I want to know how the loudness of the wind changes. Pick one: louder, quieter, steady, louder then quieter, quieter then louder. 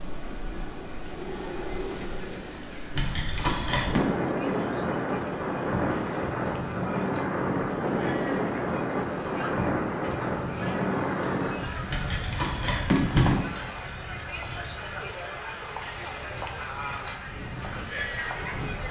louder then quieter.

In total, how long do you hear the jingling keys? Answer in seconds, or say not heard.
3 s.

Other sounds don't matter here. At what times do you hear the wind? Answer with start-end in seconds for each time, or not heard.
0.0-18.8.